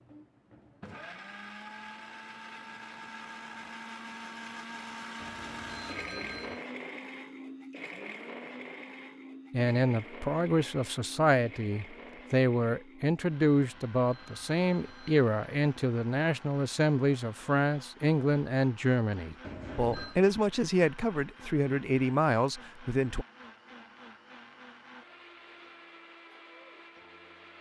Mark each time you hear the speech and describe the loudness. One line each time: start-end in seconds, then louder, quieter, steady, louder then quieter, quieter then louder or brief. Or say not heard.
9.5-23.2 steady.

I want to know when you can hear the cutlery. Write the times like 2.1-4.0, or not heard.
not heard.